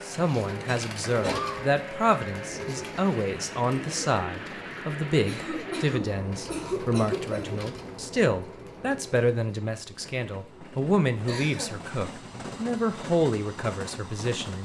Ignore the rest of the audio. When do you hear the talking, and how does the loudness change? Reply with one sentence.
You can hear the talking from 0.0 to 14.6 s, at a steady volume.